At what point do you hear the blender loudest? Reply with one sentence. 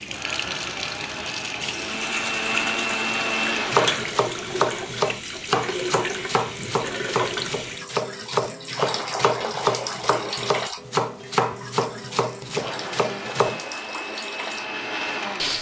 The loudest moment of the blender is at 3 seconds.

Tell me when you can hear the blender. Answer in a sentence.
You can hear the blender from 0.0 to 4.2 s and from 12.5 to 15.5 s.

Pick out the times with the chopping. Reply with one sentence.
You can hear the chopping from 3.6 to 13.6 s.